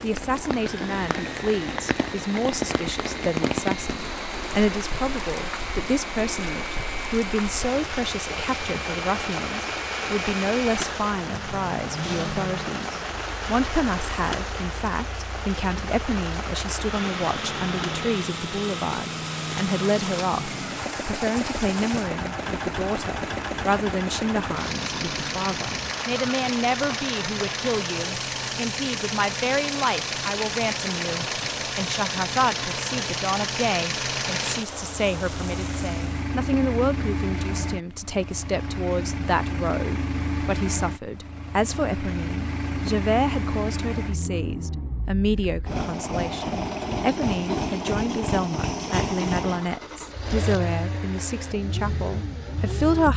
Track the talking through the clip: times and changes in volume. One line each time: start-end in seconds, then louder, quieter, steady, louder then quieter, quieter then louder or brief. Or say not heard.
0.0-53.1 steady.